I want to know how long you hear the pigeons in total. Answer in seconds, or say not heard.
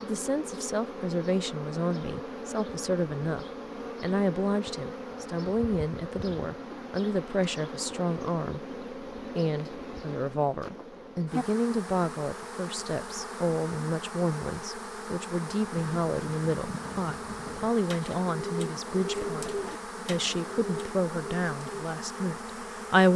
6 s.